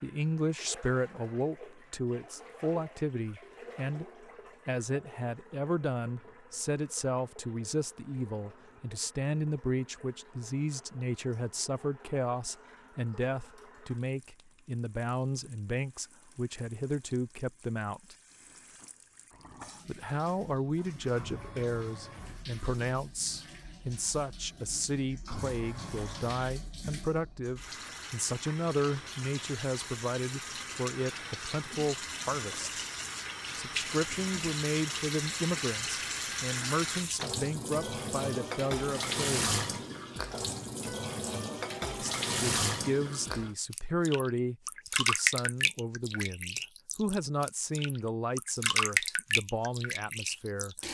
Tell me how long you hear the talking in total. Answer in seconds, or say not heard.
45 s.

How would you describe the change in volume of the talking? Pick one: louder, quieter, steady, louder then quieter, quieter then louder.
steady.